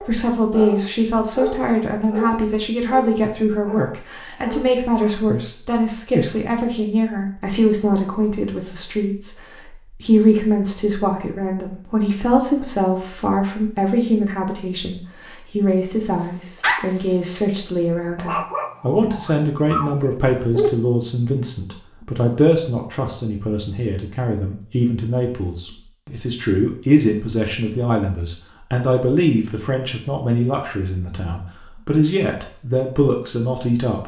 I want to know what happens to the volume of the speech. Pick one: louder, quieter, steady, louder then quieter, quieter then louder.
steady.